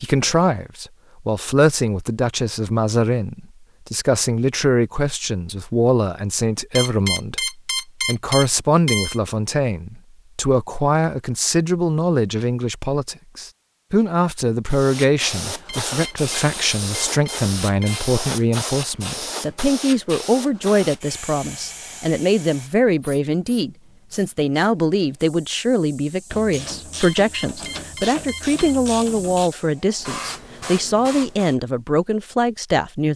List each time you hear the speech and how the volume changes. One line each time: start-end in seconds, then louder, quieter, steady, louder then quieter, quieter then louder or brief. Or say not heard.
0.0-33.1 steady.